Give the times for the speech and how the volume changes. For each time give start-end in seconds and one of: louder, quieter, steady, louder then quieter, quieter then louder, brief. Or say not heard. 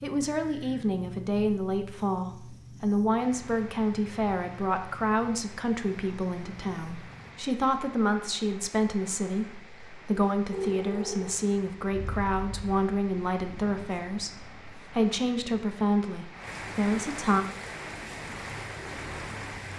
0.0-17.4 steady.